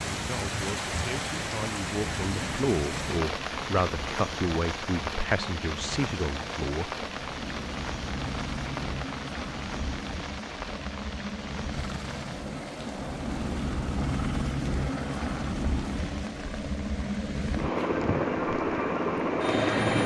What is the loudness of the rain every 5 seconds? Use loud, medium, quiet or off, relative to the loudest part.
loud, loud, medium, quiet.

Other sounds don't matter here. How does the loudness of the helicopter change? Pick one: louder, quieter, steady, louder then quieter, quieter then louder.
louder.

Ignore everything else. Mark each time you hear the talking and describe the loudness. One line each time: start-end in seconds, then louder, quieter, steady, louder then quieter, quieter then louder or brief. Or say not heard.
0.1-6.9 louder.